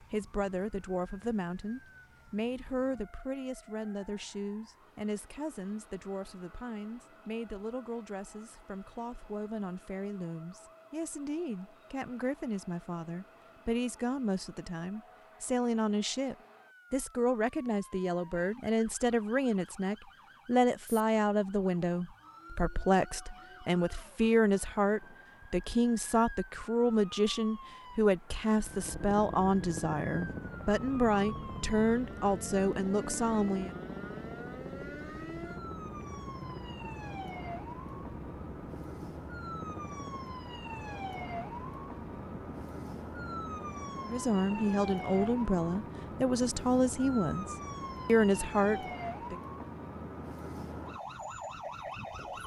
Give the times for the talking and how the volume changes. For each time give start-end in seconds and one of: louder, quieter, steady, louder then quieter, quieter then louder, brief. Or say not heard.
0.1-33.8 louder
44.0-49.4 quieter then louder.